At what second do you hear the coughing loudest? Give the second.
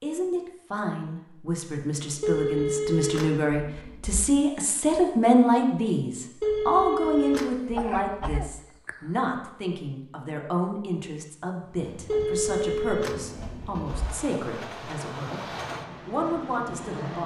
8 s.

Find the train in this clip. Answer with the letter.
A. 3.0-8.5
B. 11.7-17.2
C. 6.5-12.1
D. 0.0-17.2
B.